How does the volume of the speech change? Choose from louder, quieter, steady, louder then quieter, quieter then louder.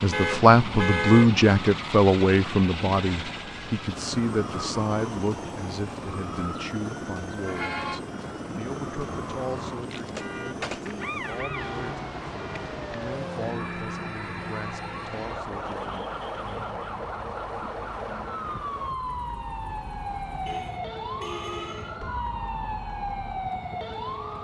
quieter.